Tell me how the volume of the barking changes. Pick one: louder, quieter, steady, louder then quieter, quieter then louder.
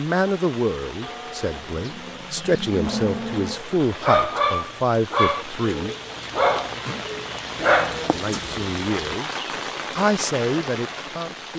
louder then quieter.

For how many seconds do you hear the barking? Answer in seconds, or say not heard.
5 s.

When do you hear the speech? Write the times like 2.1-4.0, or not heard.
0.0-6.0, 8.1-11.5.